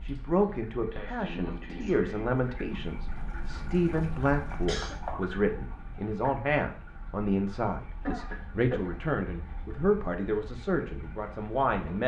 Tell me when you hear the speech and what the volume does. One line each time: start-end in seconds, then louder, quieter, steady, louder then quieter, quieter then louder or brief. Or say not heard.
0.0-12.0 steady.